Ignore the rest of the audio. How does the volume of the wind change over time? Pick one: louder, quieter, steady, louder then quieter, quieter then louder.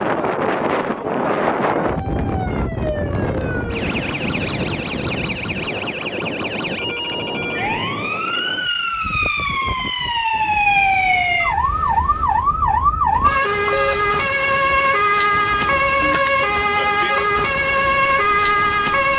quieter.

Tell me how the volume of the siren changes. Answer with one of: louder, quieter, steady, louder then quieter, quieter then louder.
louder.